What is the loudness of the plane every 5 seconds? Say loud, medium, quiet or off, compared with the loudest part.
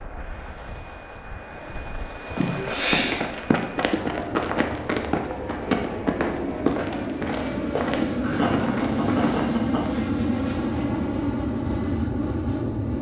medium, loud, loud.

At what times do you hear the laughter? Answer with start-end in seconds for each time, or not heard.
2.4-3.1, 8.2-10.0.